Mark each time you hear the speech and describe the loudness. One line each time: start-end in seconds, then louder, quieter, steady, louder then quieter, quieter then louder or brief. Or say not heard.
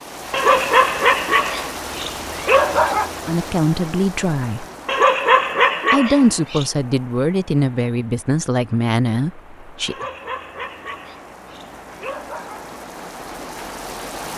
3.2-4.7 brief
5.9-9.9 steady.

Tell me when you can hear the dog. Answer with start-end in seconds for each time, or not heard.
0.3-3.1, 4.8-6.7, 9.8-12.7.